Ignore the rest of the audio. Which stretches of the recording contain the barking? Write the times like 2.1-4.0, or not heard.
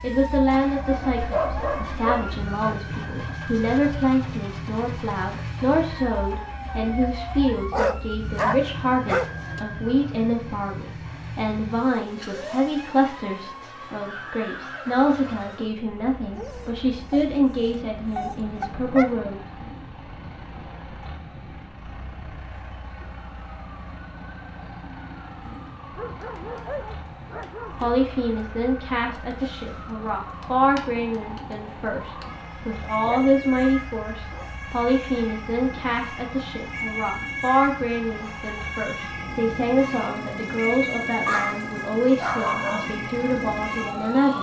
1.2-2.3, 7.7-9.7, 16.4-19.1, 25.9-27.9, 33.0-34.9, 41.2-42.9.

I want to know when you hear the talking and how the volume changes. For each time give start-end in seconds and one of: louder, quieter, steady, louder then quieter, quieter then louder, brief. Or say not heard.
0.0-19.4 steady
27.6-44.3 steady.